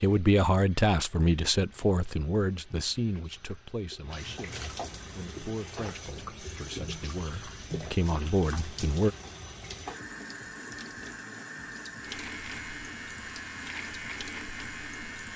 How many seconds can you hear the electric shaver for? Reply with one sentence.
The electric shaver can be heard for 3 seconds in total.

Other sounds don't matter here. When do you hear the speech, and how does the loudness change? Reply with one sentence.
You can hear the speech from 0.0 to 9.1 s, getting quieter then louder.